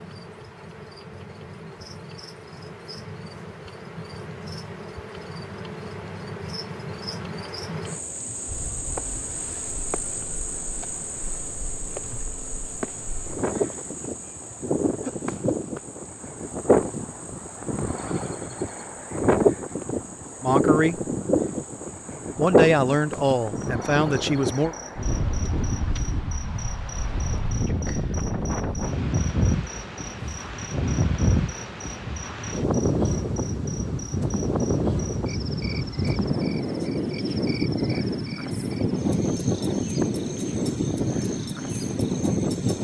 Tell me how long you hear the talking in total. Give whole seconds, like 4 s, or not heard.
3 s.